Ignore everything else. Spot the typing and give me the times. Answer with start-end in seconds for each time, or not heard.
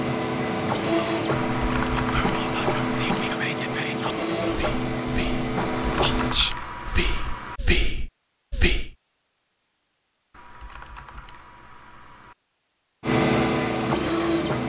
1.3-3.4, 5.5-7.6, 10.3-12.3.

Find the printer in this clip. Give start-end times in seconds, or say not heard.
0.0-6.3, 13.1-14.6.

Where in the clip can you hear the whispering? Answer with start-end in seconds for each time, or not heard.
1.9-8.9.